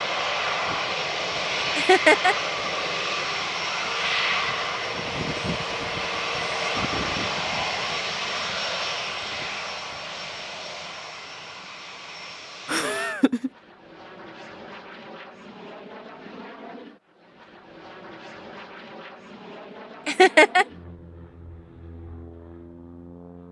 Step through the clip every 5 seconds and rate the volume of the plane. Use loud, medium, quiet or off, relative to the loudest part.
loud, loud, quiet, quiet, quiet.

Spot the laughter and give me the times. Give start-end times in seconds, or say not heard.
1.8-2.4, 12.7-13.5, 20.1-20.6.